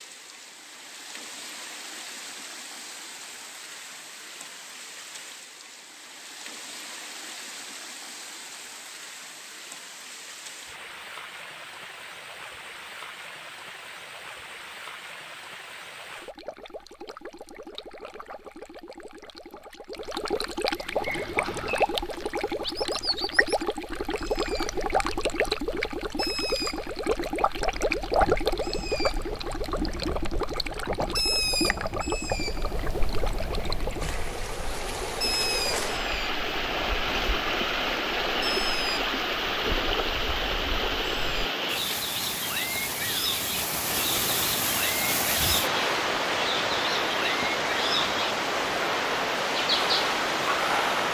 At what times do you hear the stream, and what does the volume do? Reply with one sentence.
You can hear the stream from 0.0 to 51.0 s, getting louder.